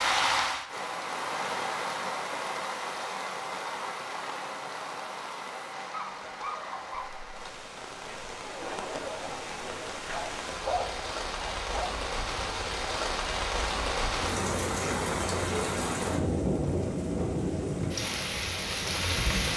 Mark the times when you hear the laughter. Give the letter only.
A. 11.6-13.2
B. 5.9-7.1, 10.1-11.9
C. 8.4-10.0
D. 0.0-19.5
C.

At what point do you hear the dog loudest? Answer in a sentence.
The volume of the dog peaks at 11 seconds.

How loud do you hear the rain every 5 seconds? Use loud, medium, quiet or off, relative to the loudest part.
loud, medium, loud, loud.